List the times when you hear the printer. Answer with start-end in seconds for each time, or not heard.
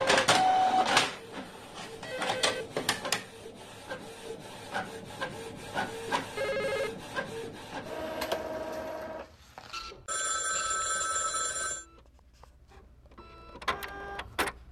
0.0-14.6.